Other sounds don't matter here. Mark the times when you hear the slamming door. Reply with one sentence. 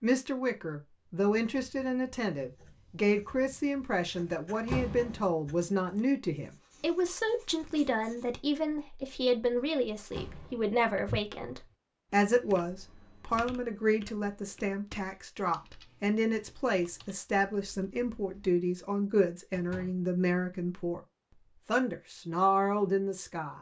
You can hear the slamming door from 4.5 to 5.2 s, from 9.9 to 10.8 s and from 19.5 to 20.1 s.